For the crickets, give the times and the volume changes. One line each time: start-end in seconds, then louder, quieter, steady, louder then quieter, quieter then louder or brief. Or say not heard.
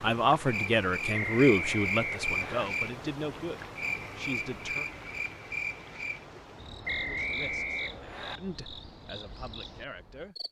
0.0-10.4 quieter.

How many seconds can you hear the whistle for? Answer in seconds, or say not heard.
3 s.